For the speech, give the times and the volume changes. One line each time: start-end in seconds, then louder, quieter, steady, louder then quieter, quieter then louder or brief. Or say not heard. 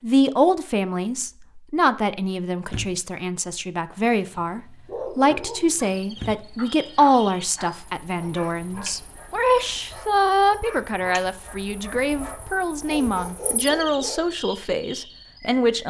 0.0-15.8 steady.